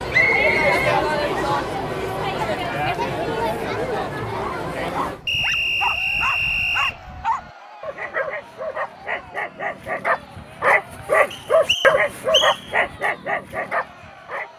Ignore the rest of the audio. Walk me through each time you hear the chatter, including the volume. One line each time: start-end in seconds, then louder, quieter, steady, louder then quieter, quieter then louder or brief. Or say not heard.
0.0-14.5 quieter.